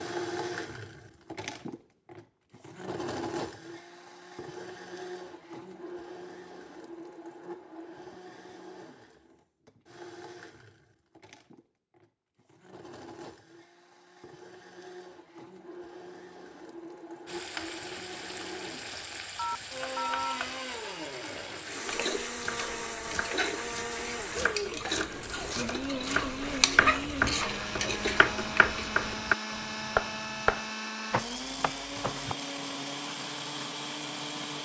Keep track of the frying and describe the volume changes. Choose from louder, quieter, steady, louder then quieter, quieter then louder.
louder.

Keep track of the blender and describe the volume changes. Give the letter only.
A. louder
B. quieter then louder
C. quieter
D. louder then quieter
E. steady
B.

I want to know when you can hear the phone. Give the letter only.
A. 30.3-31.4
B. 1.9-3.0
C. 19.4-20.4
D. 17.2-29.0
C.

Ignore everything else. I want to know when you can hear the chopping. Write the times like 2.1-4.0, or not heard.
22.4-32.8.